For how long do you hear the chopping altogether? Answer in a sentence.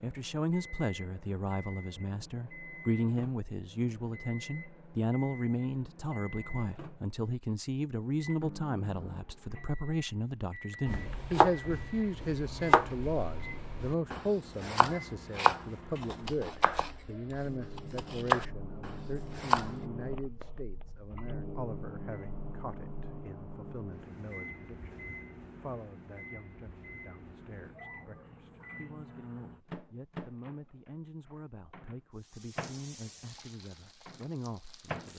You can hear the chopping for 9 seconds altogether.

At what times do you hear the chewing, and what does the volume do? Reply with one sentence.
You can't hear the chewing here.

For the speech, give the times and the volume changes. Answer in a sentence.
You can hear the speech from 0.0 to 35.1 s, getting quieter.